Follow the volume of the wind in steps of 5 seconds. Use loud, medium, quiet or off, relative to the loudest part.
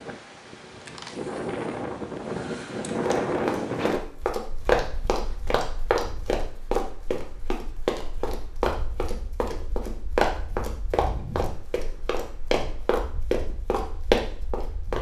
loud, quiet, quiet.